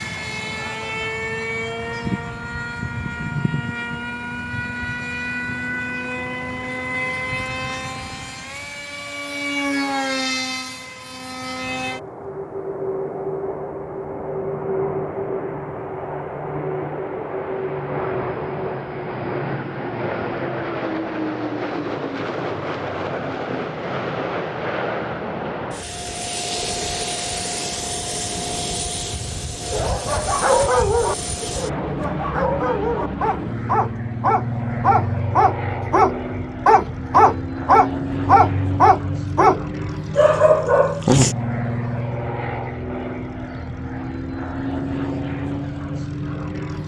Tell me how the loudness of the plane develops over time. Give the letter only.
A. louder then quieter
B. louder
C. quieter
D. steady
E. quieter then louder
D.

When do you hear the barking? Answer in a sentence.
You can hear the barking from 29.7 to 41.4 s.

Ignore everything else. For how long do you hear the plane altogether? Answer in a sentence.
You can hear the plane for 47 seconds altogether.